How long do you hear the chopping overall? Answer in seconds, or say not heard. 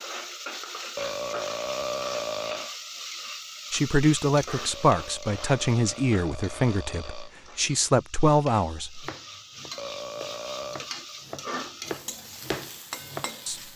5 s.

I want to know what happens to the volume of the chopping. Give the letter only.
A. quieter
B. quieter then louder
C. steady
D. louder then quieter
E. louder
E.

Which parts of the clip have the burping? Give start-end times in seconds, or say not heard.
0.9-2.7, 4.7-7.3, 9.8-10.9.